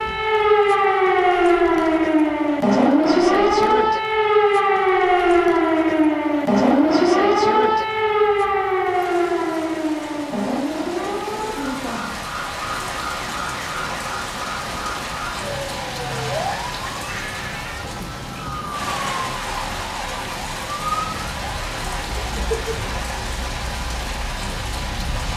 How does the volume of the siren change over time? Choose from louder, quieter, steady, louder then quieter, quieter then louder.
quieter.